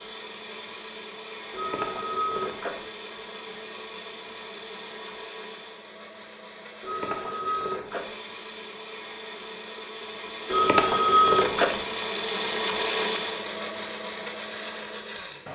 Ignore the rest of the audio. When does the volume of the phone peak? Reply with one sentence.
The volume of the phone peaks at 11 seconds.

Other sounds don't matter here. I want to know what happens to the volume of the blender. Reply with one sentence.
The loudness of the blender goes up.